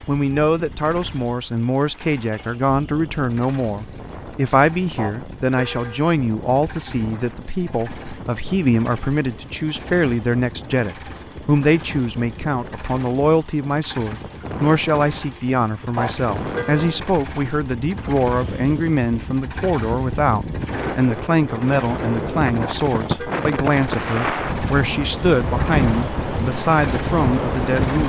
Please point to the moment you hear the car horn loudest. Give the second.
16 s.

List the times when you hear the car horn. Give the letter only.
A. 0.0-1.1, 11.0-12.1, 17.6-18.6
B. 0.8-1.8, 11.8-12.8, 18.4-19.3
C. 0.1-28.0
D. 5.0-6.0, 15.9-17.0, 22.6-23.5
D.